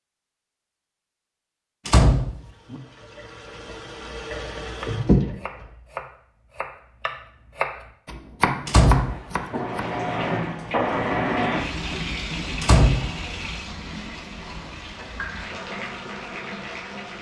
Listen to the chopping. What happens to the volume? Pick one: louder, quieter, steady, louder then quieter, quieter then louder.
louder.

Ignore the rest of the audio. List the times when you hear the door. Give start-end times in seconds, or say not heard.
1.9-2.8, 8.7-9.6, 12.6-13.1.